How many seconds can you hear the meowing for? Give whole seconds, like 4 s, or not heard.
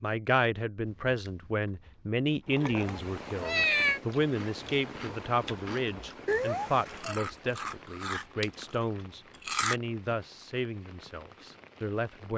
2 s.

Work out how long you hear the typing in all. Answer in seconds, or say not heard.
not heard.